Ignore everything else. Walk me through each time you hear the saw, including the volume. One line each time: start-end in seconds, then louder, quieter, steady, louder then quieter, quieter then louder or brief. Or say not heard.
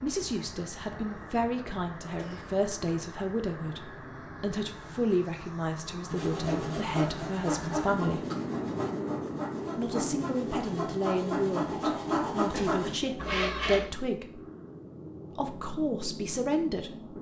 6.1-13.9 quieter then louder.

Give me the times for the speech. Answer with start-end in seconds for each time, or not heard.
0.0-8.2, 9.8-14.4, 15.3-17.1.